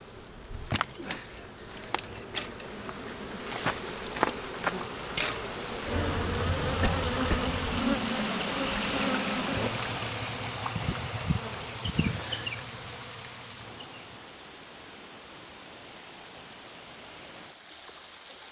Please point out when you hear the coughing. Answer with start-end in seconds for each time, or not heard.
6.8-7.5.